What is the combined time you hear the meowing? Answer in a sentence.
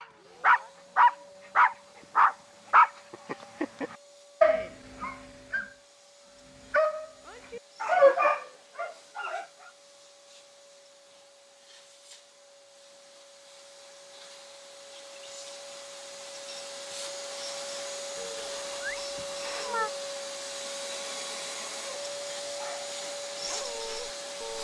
The meowing can be heard for 2 seconds in total.